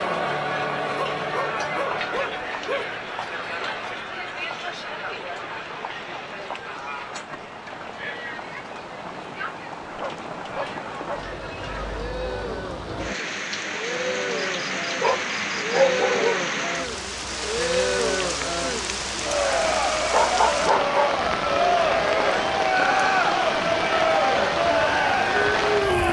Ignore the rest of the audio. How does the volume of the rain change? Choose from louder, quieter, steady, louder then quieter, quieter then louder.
louder.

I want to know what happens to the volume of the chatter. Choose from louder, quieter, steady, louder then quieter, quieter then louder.
quieter then louder.